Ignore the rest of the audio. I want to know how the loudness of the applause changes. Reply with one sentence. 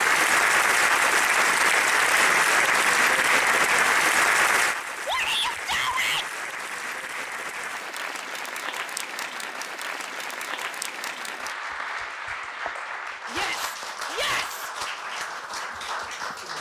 The volume of the applause goes down.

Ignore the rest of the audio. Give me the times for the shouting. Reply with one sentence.
The shouting can be heard from 5.0 to 6.2 s and from 13.3 to 14.7 s.